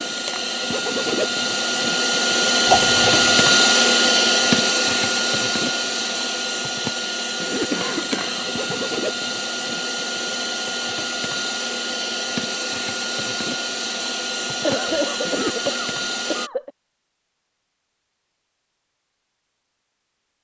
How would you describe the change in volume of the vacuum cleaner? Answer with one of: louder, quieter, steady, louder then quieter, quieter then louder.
quieter.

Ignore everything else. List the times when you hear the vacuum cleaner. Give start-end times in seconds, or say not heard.
0.0-16.5.